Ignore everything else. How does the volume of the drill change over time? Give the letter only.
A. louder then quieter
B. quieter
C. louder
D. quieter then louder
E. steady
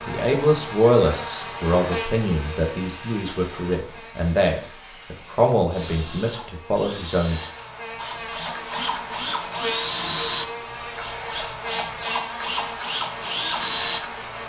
C.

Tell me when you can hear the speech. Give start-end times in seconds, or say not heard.
0.1-7.4.